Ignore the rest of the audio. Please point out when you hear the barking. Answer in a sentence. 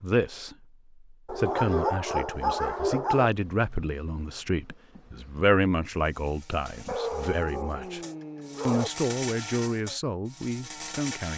You can hear the barking from 1.2 to 3.3 s and from 6.8 to 8.9 s.